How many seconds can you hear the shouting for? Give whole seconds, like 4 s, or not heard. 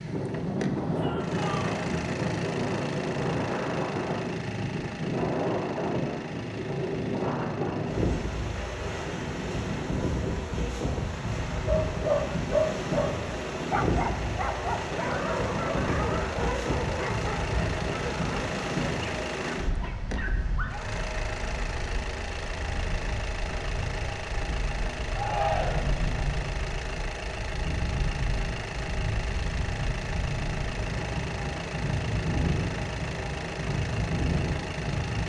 2 s.